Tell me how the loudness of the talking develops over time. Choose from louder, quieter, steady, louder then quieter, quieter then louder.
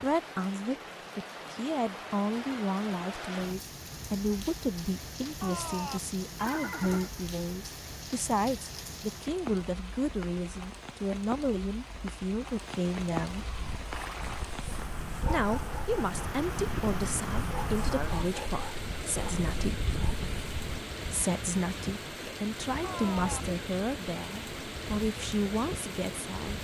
steady.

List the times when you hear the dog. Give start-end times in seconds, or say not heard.
13.4-20.9.